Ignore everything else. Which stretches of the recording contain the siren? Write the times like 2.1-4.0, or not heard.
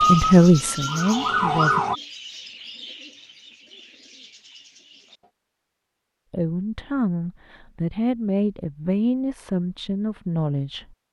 0.0-1.9.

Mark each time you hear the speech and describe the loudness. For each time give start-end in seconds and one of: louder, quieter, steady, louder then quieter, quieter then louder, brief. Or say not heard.
0.0-1.8 brief
6.3-10.9 steady.